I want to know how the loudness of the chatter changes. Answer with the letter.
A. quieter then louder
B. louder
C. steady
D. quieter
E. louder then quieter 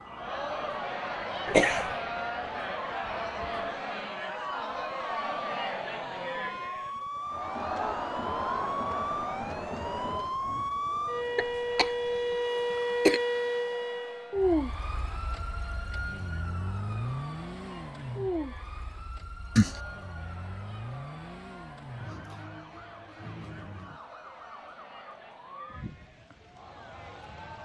D.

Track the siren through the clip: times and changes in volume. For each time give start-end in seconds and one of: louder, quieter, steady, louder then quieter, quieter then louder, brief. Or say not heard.
0.0-27.6 louder then quieter.